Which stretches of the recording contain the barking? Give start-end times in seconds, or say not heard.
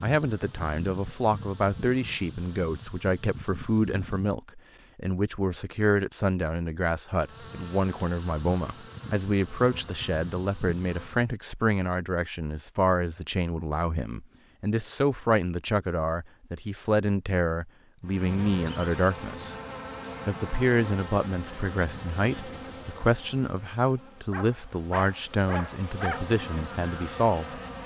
24.3-26.2.